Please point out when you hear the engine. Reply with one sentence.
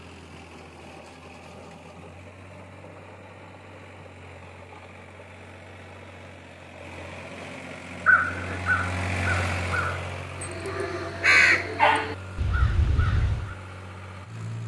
The engine can be heard from 0.0 to 14.6 s.